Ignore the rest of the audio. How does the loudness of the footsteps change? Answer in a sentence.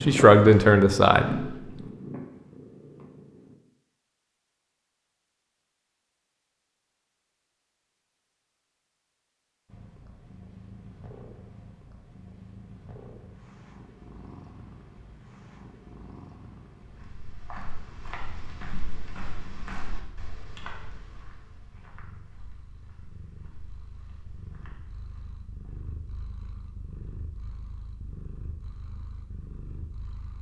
The volume of the footsteps goes down.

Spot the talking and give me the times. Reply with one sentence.
You can hear the talking from 0.0 to 1.6 s.